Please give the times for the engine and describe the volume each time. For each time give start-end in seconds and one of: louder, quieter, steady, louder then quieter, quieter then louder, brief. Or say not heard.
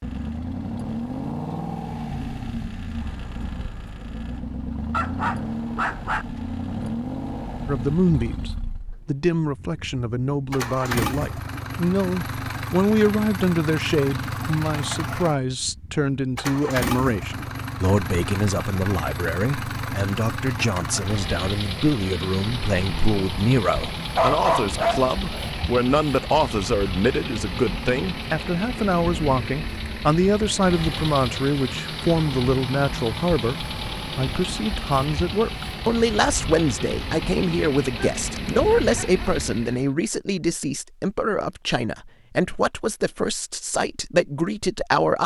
0.0-39.9 steady.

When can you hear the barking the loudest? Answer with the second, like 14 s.
24 s.